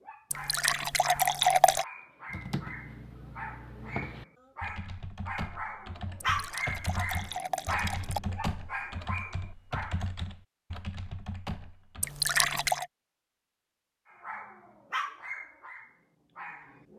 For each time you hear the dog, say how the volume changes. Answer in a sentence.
The dog can be heard from 0.0 to 10.1 s, getting louder then quieter; and briefly from 14.1 to 16.9 s.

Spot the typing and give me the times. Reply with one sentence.
The typing can be heard from 2.2 to 12.2 s.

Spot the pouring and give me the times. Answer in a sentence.
The pouring can be heard from 0.3 to 1.9 s, from 6.2 to 8.2 s and from 12.0 to 12.8 s.